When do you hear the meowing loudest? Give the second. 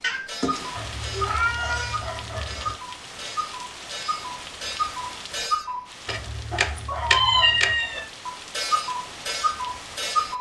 7 s.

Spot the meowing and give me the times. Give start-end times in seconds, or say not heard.
0.0-2.0, 6.5-8.1.